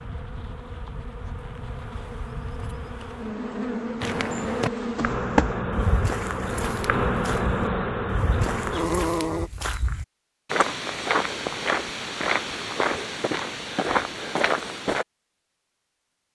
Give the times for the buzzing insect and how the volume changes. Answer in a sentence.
The buzzing insect can be heard from 0.0 to 9.5 s, getting louder.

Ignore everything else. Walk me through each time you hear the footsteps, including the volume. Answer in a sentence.
You can hear the footsteps from 4.0 to 15.1 s, getting quieter then louder.